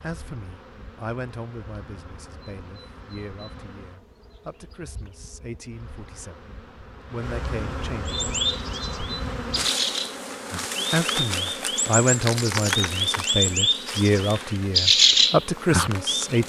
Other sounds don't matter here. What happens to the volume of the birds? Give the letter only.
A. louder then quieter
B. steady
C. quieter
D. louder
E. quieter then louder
D.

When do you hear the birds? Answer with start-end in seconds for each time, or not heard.
8.1-16.4.